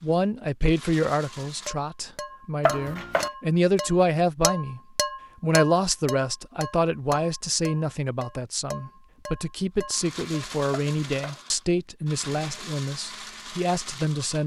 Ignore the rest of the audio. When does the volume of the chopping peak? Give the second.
3 s.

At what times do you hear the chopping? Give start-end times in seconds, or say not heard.
2.6-3.3, 10.7-11.4.